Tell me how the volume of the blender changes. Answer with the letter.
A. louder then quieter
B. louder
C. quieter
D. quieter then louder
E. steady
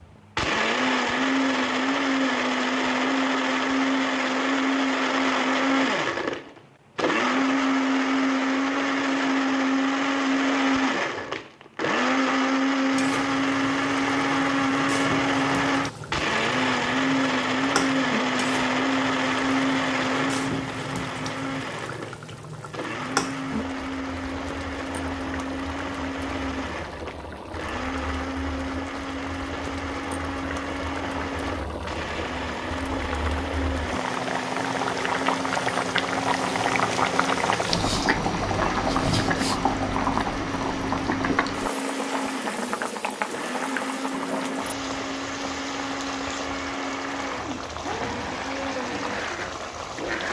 C.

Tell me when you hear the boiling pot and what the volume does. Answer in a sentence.
The boiling pot can be heard from 12.9 to 50.2 s, getting louder then quieter.